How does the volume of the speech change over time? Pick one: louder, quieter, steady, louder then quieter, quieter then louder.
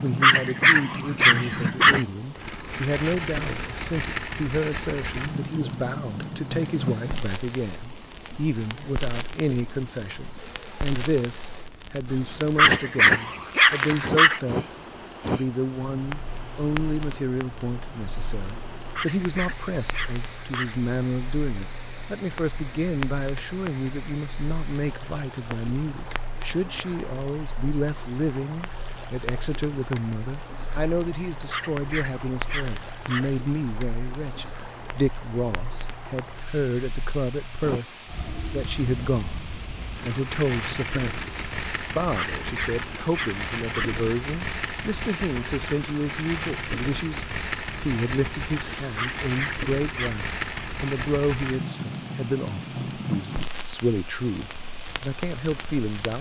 steady.